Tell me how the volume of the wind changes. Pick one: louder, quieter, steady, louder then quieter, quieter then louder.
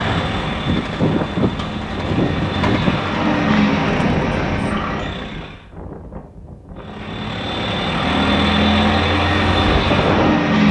quieter then louder.